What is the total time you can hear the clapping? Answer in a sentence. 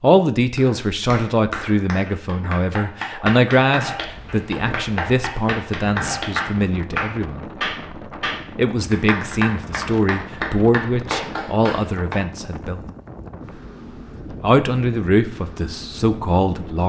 You can hear the clapping for 12 seconds altogether.